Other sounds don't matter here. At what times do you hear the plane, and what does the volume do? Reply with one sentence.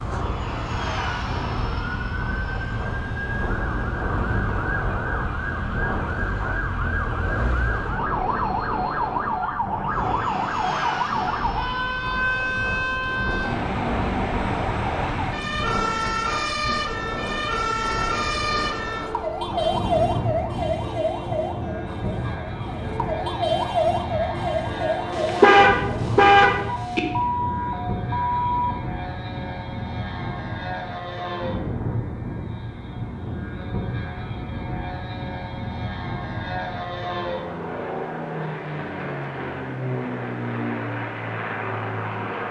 You can hear the plane from 0.0 to 42.4 s, at a steady volume.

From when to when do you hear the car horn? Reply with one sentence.
The car horn can be heard from 25.1 to 27.0 s.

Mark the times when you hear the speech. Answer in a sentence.
You can't hear the speech here.